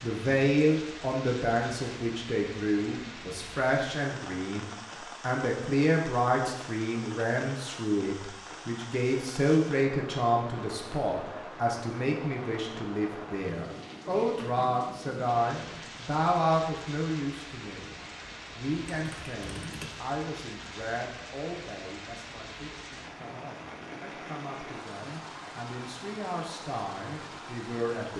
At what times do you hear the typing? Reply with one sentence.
You can hear the typing from 18.9 to 20.0 s.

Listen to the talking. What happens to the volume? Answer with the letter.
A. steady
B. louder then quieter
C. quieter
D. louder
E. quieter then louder
C.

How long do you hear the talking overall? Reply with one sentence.
You can hear the talking for 28 seconds altogether.